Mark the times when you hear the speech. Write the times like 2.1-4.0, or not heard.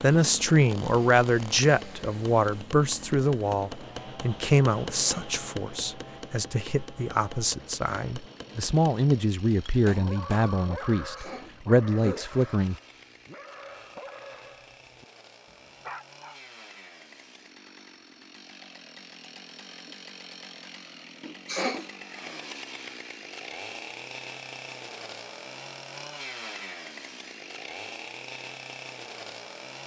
0.0-12.8.